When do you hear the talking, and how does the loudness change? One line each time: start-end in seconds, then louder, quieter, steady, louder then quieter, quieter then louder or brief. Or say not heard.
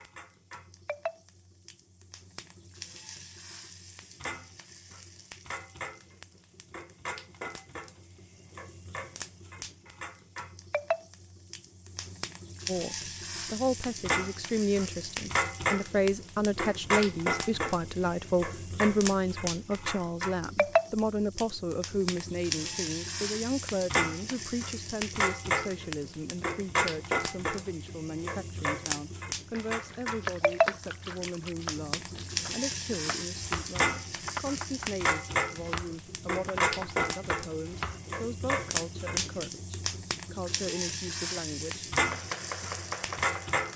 12.7-41.9 quieter.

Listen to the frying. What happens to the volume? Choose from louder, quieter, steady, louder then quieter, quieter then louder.
louder.